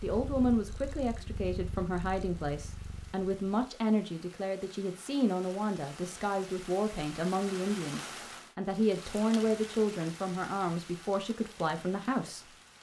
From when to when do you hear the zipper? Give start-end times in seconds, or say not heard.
not heard.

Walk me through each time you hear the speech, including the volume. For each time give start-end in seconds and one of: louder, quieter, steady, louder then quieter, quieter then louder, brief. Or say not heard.
0.0-12.6 steady.